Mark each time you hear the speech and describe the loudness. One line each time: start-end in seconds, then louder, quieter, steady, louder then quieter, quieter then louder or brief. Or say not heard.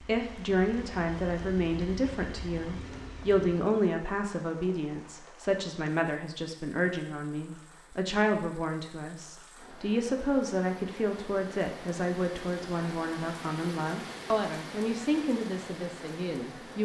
0.0-16.8 steady.